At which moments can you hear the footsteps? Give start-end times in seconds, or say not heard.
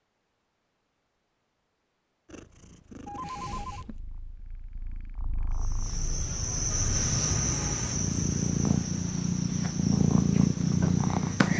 not heard.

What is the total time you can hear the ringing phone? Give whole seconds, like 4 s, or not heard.
2 s.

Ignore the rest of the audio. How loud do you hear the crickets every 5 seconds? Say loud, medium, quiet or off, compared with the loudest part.
off, loud, medium.